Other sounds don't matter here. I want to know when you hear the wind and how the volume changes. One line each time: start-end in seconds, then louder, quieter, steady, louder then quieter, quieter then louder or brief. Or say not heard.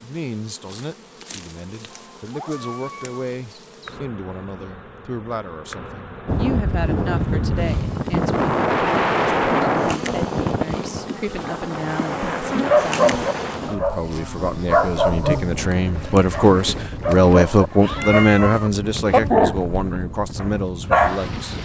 6.2-21.5 quieter.